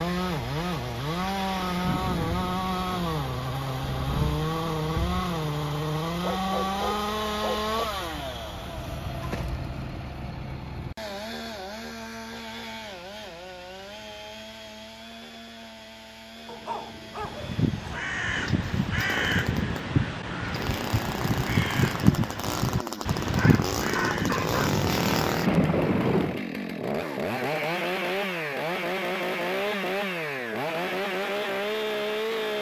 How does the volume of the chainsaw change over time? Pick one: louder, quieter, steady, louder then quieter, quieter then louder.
quieter then louder.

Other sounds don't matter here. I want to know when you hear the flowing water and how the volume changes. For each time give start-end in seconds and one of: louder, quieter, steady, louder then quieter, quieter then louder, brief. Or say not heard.
not heard.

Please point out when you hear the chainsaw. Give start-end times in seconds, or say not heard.
0.0-32.5.